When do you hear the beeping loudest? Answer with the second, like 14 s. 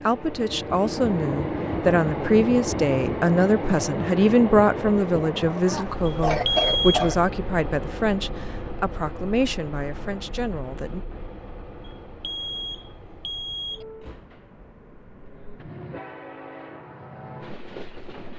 7 s.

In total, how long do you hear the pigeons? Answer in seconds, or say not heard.
not heard.